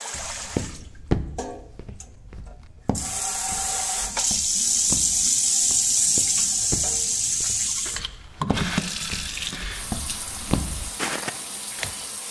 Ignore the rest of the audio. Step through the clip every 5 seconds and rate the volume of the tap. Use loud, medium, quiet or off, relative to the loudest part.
loud, loud, quiet.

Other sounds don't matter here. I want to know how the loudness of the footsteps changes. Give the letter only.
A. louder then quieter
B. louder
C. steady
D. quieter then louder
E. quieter
D.